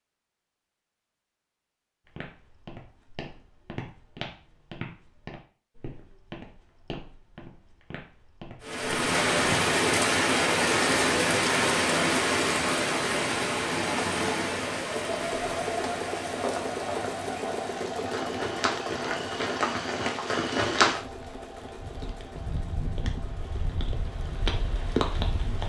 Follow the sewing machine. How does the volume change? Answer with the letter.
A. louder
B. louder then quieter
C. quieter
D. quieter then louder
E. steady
C.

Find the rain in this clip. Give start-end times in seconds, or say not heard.
8.6-25.6.